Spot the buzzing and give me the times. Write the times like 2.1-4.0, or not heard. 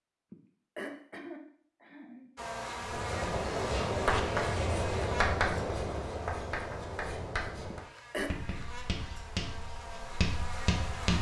2.4-11.1.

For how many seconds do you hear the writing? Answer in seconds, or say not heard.
8 s.